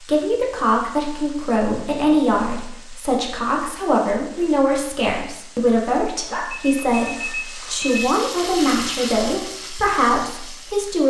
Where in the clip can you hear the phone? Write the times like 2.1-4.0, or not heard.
6.2-8.1.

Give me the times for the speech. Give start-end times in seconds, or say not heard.
0.0-11.0.